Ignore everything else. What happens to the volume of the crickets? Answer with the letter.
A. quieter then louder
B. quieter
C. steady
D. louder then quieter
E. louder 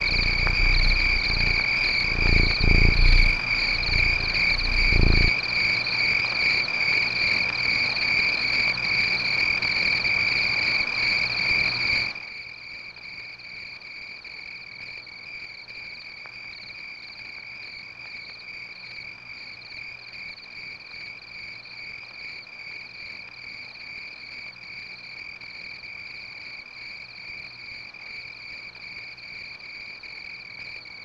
B.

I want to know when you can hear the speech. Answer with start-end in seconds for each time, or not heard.
not heard.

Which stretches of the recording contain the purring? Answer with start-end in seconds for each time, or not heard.
0.0-5.3.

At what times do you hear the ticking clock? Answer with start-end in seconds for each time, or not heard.
not heard.